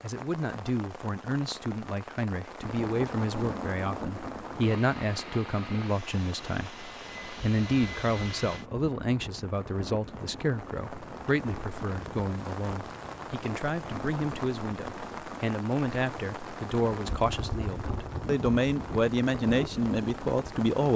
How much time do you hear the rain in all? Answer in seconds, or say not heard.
21 s.